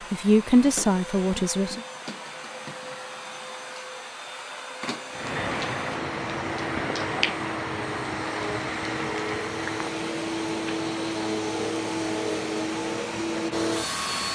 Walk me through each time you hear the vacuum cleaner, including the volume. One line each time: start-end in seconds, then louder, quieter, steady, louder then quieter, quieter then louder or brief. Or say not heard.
0.0-14.3 louder.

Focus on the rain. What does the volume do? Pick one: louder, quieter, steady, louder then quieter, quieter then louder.
quieter.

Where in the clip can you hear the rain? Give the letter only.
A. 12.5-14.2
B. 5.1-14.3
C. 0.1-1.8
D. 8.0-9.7
B.